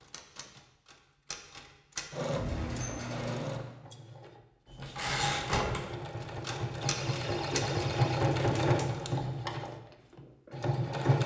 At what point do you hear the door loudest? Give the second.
3 s.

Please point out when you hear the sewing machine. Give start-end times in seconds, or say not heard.
2.1-11.2.